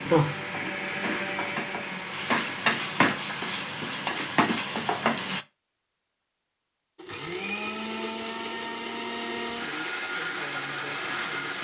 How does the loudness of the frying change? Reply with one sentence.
The volume of the frying goes up.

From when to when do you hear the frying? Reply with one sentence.
You can hear the frying from 0.0 to 5.5 s.